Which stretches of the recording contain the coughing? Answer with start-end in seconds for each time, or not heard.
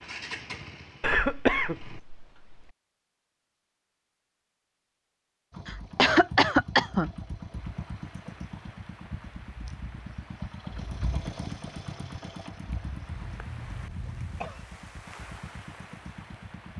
1.0-2.5, 5.7-7.1, 13.1-14.7.